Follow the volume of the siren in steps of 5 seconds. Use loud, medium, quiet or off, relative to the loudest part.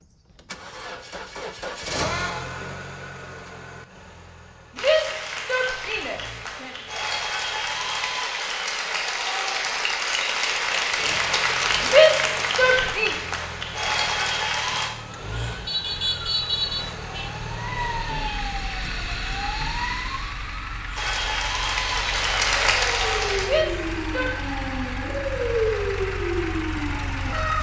off, off, off, loud, medium, loud.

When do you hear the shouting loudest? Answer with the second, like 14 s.
12 s.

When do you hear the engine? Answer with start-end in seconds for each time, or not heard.
0.0-8.2, 10.7-27.5.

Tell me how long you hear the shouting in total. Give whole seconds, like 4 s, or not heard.
4 s.